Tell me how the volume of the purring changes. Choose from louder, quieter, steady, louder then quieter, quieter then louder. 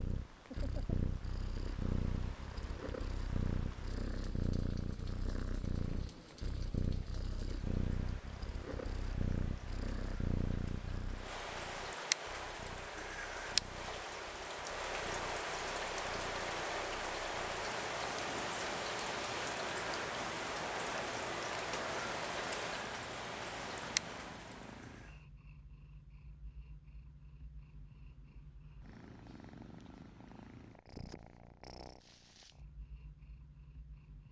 quieter.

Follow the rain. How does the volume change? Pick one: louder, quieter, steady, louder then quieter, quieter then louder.
louder.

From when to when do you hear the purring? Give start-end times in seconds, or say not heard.
0.0-34.2.